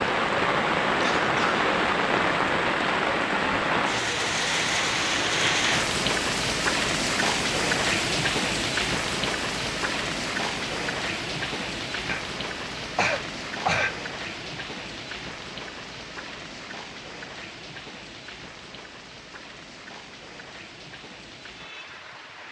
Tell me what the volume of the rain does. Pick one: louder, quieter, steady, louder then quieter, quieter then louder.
quieter.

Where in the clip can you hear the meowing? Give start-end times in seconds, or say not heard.
not heard.